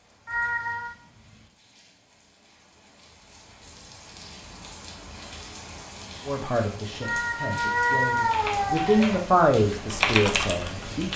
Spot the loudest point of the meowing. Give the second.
8 s.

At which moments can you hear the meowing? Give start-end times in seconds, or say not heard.
0.2-0.9, 7.0-9.3.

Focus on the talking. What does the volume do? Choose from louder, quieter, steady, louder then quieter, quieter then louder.
louder then quieter.